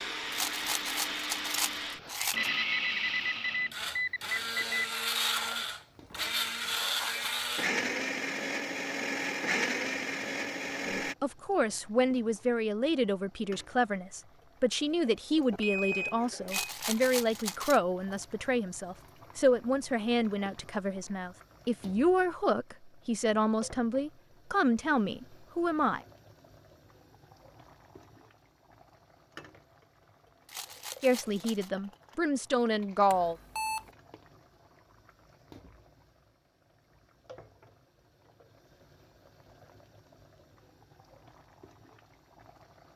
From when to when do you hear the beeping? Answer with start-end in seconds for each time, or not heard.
2.4-4.8, 15.5-16.8, 33.1-33.9.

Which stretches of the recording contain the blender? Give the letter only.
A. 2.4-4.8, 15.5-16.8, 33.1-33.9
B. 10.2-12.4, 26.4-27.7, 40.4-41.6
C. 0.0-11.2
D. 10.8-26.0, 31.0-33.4
C.